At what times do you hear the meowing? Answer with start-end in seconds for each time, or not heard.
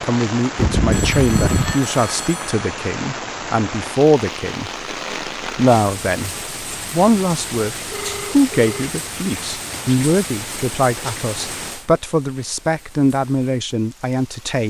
0.6-1.8.